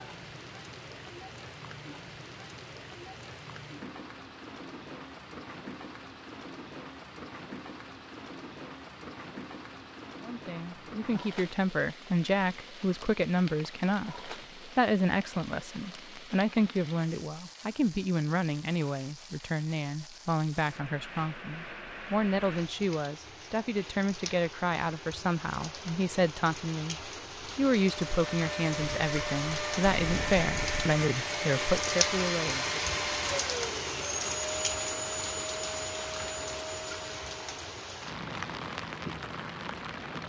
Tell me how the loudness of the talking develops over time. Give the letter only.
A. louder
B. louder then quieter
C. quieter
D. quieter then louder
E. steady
E.